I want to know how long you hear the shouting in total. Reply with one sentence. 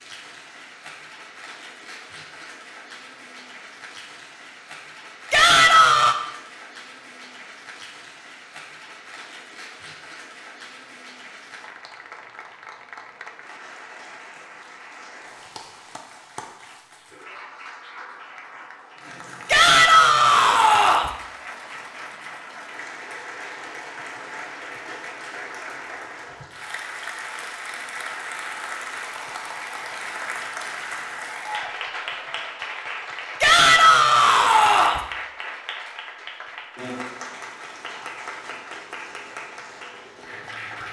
You can hear the shouting for 4 seconds altogether.